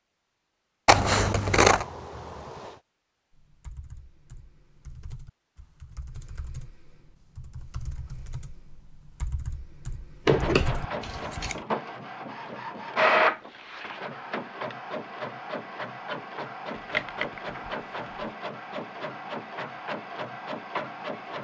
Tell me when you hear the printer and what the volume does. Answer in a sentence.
The printer can be heard from 10.2 to 21.4 s, getting louder then quieter.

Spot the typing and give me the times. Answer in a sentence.
You can hear the typing from 3.3 to 11.5 s.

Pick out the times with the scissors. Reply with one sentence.
The scissors can be heard from 0.8 to 1.9 s, from 10.2 to 11.6 s and from 16.8 to 18.2 s.